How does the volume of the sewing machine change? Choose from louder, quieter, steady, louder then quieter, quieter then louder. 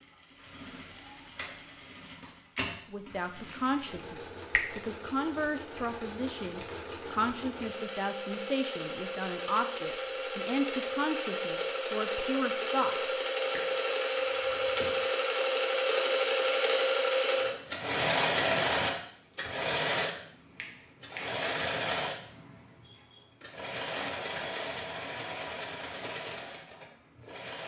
louder then quieter.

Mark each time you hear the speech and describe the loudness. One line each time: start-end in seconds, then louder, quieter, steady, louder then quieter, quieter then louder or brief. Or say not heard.
2.9-13.1 steady.